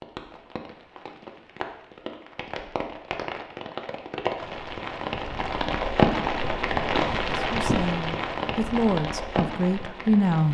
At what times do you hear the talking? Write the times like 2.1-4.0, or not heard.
7.3-10.4.